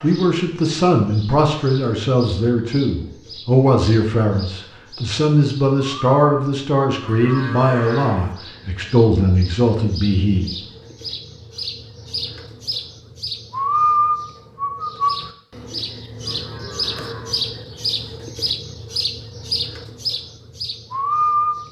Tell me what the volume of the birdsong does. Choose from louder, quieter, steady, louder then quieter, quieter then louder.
louder.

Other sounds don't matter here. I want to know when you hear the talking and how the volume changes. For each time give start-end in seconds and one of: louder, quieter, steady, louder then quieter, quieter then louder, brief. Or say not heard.
0.0-10.5 steady.